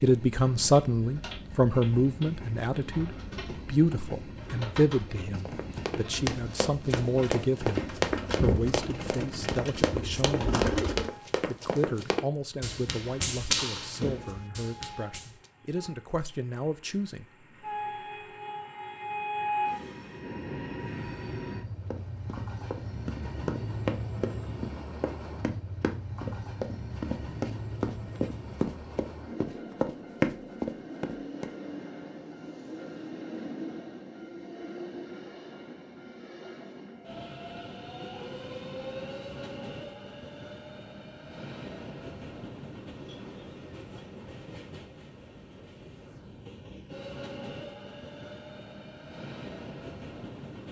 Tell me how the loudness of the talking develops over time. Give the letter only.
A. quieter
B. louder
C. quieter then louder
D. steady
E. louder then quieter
A.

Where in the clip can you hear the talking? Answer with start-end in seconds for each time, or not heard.
0.0-10.7, 11.4-17.4.